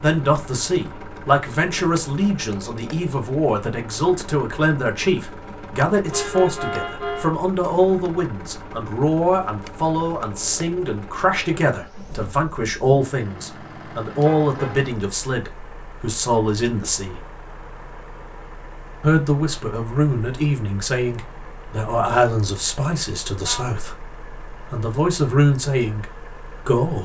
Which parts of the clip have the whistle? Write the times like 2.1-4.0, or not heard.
not heard.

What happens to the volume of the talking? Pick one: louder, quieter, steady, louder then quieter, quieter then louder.
steady.